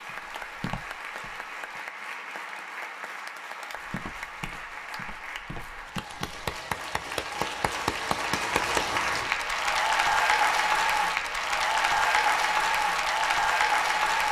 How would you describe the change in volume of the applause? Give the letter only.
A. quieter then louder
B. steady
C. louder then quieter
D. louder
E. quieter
D.